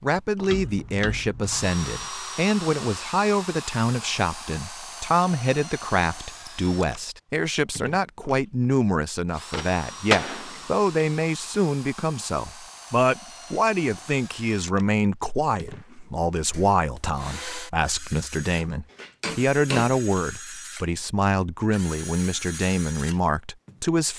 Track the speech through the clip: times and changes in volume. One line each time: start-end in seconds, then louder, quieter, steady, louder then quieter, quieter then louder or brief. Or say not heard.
0.0-24.1 steady.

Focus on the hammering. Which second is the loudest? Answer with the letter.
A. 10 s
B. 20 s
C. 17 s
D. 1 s
A.